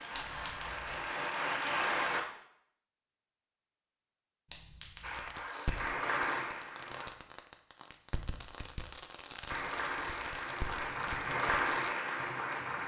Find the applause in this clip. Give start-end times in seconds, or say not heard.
0.0-2.2, 5.0-7.1, 9.4-12.8.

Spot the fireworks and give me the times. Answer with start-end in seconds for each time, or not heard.
5.1-11.9.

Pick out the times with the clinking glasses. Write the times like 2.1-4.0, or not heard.
0.1-0.9, 4.5-5.2, 9.6-10.3.